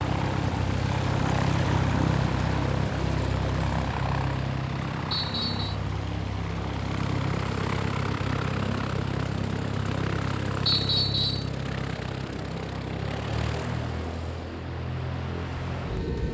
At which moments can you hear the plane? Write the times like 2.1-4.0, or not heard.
0.0-16.3.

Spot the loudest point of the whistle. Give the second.
11 s.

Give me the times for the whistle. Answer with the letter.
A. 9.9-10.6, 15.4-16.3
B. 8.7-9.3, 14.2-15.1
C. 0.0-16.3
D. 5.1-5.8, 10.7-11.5
D.